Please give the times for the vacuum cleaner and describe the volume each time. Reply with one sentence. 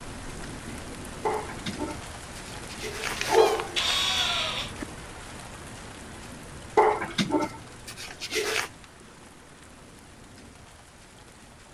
You can't hear the vacuum cleaner here.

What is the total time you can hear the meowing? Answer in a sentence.
You can hear the meowing for 2 seconds altogether.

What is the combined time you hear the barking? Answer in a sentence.
You can hear the barking for 4 seconds altogether.